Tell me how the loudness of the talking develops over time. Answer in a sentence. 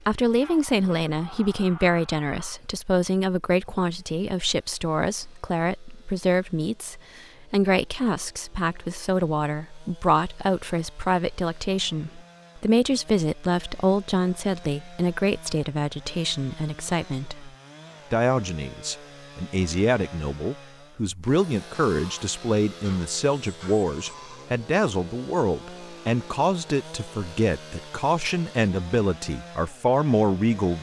The volume of the talking stays about the same.